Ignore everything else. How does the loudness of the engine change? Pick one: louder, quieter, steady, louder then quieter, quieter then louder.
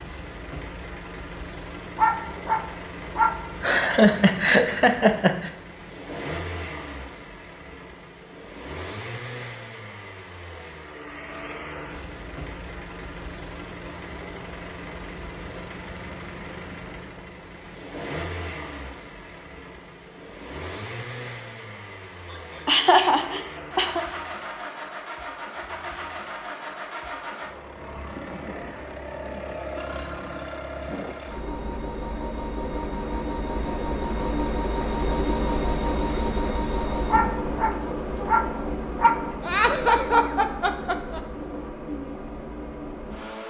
louder.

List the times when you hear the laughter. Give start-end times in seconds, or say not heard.
3.6-5.5, 22.3-24.0, 39.4-41.2.